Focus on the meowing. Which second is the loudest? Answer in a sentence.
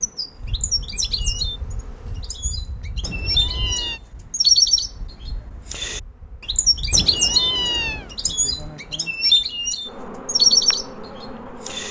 The loudest moment of the meowing is at 8 seconds.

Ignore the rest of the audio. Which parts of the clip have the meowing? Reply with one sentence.
You can hear the meowing from 3.0 to 4.0 s and from 6.9 to 8.2 s.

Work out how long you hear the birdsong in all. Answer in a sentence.
You can hear the birdsong for 12 seconds altogether.